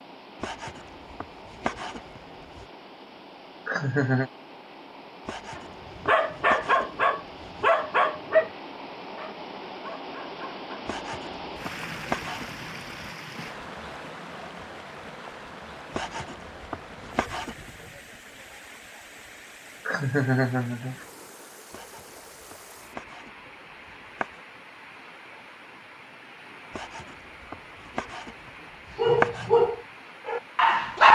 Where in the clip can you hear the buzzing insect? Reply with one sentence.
You can't hear the buzzing insect here.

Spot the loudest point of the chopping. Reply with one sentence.
The loudest moment of the chopping is at 29 seconds.